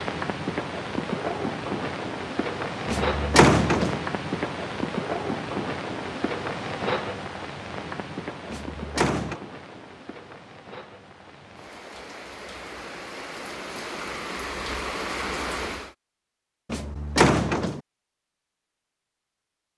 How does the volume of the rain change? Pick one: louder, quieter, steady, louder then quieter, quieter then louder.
quieter then louder.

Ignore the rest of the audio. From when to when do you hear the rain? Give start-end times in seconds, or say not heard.
0.0-15.9.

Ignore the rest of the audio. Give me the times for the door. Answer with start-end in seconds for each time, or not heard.
2.9-4.0, 8.5-9.4, 16.7-17.8.